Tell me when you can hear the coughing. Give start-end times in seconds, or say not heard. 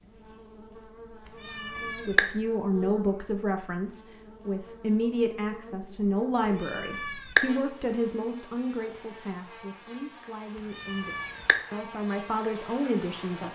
not heard.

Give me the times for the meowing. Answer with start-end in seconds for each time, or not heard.
1.4-2.2, 6.6-7.4, 10.8-11.6.